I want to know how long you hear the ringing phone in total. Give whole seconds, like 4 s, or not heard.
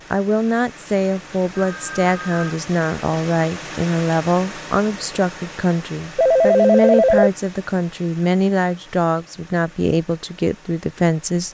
2 s.